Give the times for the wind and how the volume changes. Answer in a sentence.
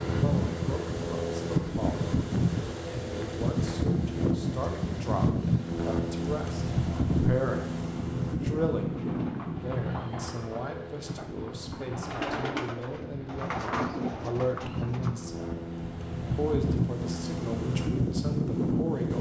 The wind can be heard from 0.0 to 19.1 s, getting quieter then louder.